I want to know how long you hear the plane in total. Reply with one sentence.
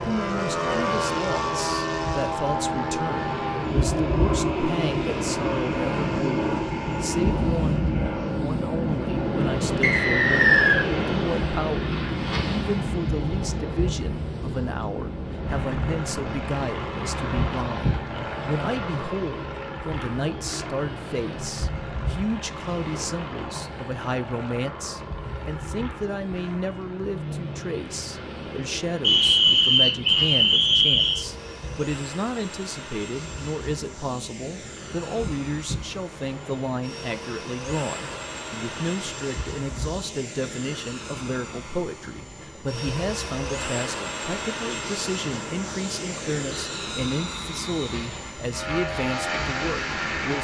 You can hear the plane for 50 seconds altogether.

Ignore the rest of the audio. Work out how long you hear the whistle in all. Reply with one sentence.
The whistle can be heard for 5 seconds in total.